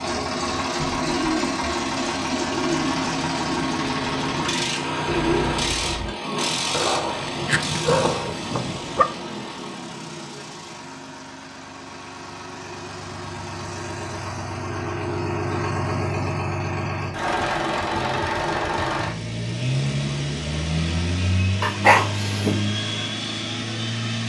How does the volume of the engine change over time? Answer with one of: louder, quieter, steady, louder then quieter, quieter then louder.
quieter then louder.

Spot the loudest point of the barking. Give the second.
22 s.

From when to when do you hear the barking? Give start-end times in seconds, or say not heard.
6.7-9.1, 21.6-22.6.